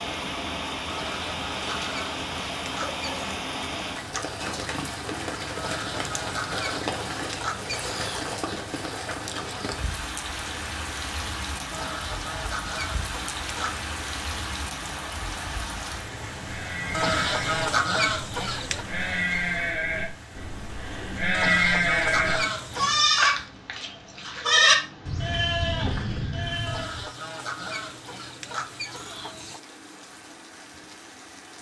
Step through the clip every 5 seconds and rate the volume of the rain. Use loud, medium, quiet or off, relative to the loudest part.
loud, loud, loud, medium, quiet, quiet, quiet.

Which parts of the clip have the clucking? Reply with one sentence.
The clucking can be heard from 0.8 to 3.4 s, from 5.5 to 8.3 s, from 11.7 to 13.9 s, from 16.9 to 18.9 s, from 21.3 to 23.1 s and from 26.6 to 29.6 s.